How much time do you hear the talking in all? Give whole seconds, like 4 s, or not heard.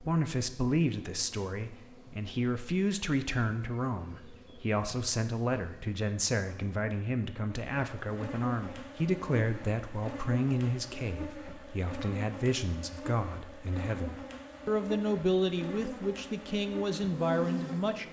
18 s.